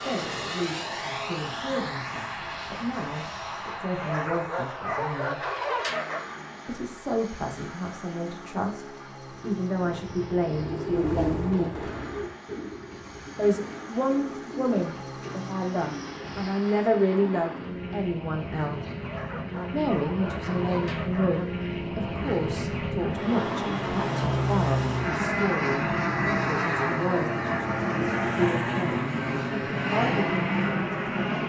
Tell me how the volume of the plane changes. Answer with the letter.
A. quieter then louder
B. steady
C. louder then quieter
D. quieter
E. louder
A.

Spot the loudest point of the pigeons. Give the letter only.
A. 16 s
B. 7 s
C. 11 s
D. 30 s
C.